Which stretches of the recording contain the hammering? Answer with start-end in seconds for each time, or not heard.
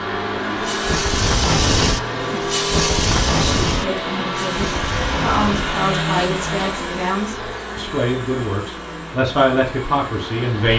not heard.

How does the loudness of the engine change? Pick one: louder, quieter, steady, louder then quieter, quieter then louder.
quieter.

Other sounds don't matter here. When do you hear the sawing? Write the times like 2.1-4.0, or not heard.
not heard.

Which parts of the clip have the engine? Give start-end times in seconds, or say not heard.
0.0-10.7.